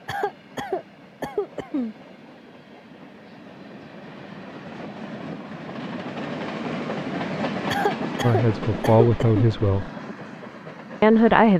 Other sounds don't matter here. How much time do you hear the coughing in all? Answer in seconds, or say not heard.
4 s.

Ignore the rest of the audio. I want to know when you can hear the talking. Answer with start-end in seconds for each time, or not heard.
8.2-9.9, 11.0-11.5.